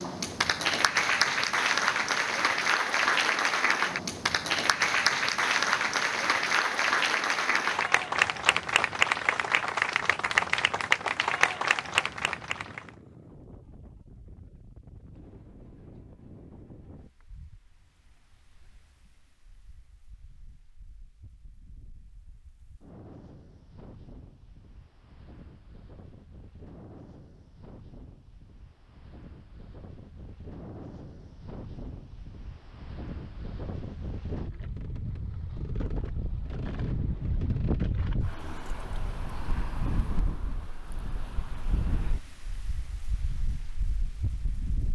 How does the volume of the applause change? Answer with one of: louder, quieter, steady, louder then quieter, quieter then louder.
steady.